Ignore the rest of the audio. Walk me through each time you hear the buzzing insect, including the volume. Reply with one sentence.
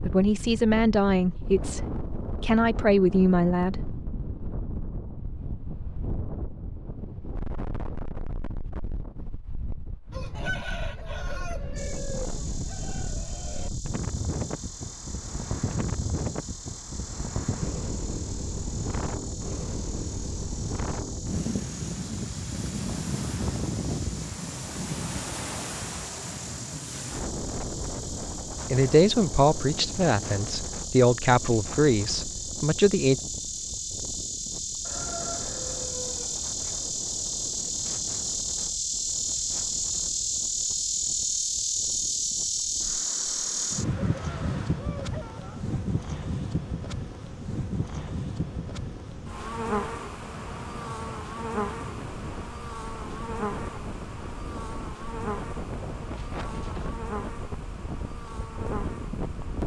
The buzzing insect can be heard from 11.8 to 59.6 s, getting louder then quieter.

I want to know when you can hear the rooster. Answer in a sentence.
You can hear the rooster from 10.1 to 13.7 s, from 34.9 to 36.5 s and from 44.0 to 45.6 s.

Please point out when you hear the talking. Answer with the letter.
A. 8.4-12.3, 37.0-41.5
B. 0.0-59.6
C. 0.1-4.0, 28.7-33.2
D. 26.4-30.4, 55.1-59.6
C.